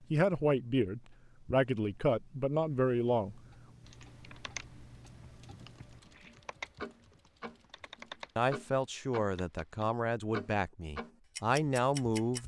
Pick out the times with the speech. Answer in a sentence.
The speech can be heard from 0.1 to 3.4 s and from 8.3 to 12.4 s.